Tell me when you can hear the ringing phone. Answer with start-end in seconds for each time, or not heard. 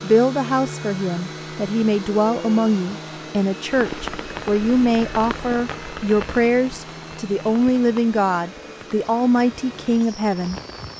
not heard.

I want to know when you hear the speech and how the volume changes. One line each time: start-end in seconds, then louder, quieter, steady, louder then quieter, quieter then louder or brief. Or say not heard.
0.0-10.6 steady.